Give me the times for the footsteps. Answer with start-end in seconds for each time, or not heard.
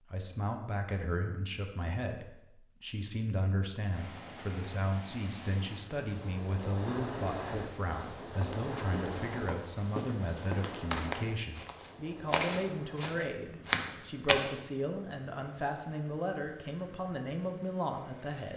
8.0-14.6.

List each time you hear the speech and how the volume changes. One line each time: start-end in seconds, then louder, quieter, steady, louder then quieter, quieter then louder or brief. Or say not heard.
0.1-18.5 steady.